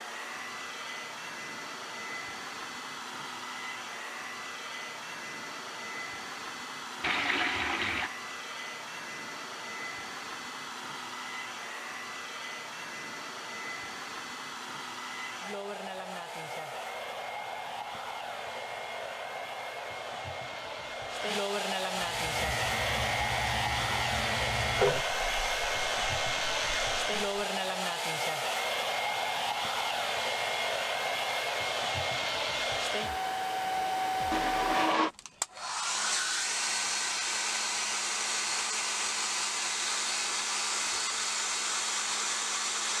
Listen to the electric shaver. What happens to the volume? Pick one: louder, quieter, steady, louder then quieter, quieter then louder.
steady.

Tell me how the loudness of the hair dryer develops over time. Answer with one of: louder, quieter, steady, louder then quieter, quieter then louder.
louder.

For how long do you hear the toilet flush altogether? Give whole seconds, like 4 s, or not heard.
2 s.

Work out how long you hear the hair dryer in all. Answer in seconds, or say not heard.
43 s.